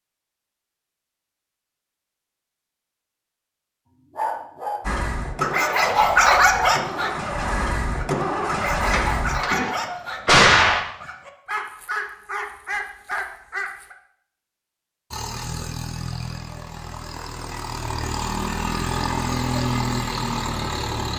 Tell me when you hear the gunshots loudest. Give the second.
10 s.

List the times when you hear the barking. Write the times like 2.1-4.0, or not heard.
4.1-13.9.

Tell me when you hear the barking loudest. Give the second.
6 s.